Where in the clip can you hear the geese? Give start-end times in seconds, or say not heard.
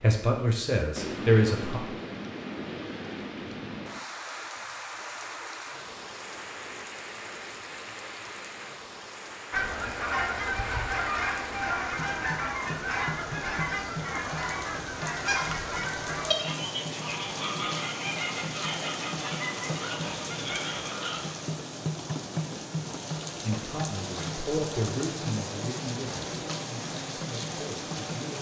9.5-21.2.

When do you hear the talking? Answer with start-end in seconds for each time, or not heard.
0.0-1.8, 23.4-28.3.